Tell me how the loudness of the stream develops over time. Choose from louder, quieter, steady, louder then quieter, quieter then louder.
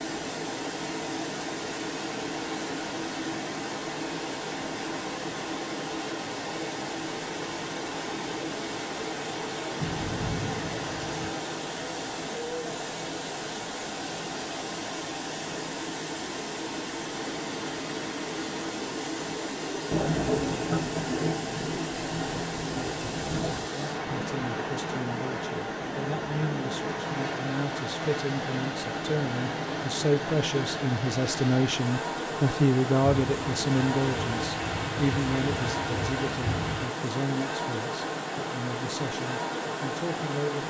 steady.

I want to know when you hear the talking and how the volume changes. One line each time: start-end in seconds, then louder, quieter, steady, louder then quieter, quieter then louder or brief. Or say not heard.
23.7-40.6 louder then quieter.